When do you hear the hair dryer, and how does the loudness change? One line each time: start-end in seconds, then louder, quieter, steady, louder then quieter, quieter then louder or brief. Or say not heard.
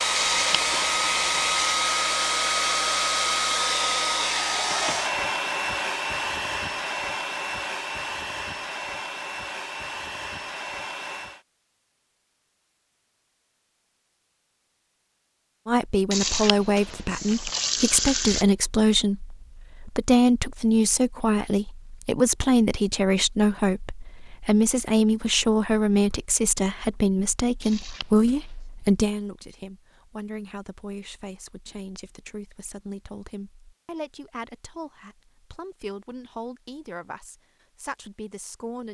0.0-11.4 quieter.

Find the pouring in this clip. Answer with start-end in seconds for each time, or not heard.
0.1-1.6, 16.1-18.4, 27.6-28.6.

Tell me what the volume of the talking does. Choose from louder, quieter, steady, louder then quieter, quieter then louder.
quieter.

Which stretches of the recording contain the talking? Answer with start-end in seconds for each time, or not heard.
15.7-38.8.